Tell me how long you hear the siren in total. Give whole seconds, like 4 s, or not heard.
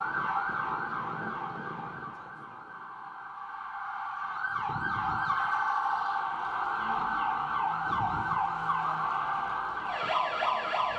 11 s.